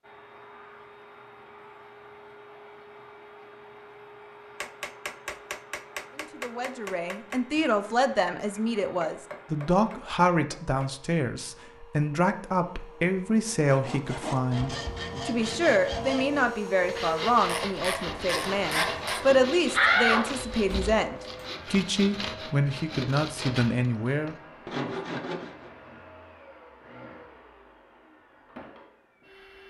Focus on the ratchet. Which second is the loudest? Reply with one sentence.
The volume of the ratchet peaks at 19 seconds.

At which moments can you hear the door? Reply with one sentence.
You can hear the door from 19.7 to 21.4 s.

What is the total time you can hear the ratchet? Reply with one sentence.
The ratchet can be heard for 2 seconds in total.